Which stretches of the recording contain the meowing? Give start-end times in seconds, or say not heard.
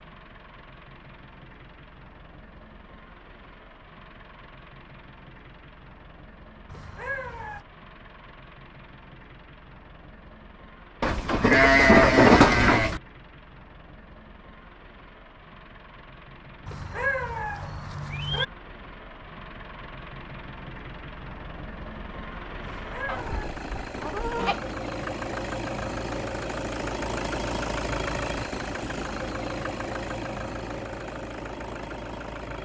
6.7-7.7, 16.6-18.4, 22.6-23.4.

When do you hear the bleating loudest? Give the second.
12 s.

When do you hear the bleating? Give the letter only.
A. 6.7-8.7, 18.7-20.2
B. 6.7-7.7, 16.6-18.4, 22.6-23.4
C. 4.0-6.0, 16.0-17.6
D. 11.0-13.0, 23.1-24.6
D.